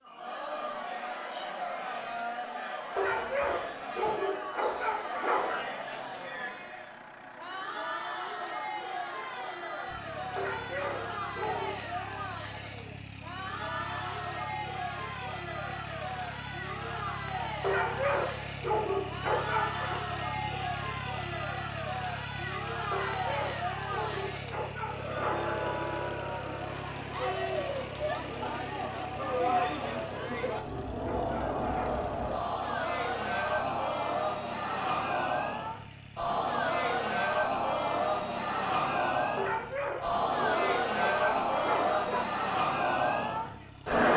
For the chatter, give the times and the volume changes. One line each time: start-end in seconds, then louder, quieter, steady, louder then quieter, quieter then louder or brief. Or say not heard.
0.0-44.1 louder.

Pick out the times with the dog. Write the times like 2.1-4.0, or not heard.
3.0-5.7, 10.3-11.8, 17.6-20.0, 22.9-25.6, 29.4-32.0, 39.4-42.2.